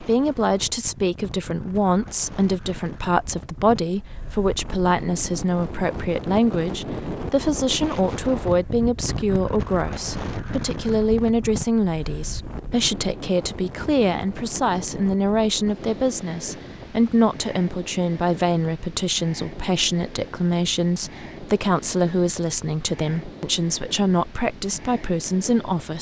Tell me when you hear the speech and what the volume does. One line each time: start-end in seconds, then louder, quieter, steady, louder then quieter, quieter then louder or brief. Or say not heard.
0.0-25.9 steady.